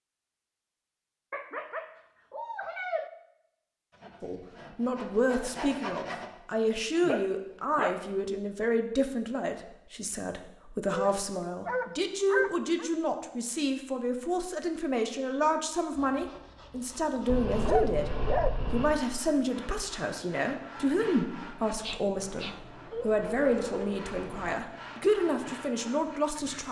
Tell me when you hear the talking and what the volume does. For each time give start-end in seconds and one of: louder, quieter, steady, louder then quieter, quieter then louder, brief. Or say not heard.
4.2-18.1 steady
18.7-26.6 steady.